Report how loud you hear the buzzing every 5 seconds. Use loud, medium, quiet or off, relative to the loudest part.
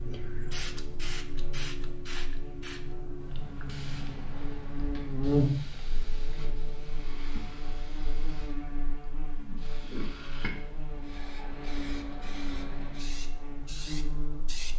medium, loud, medium.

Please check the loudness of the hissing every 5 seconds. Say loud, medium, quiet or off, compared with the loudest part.
loud, medium, loud.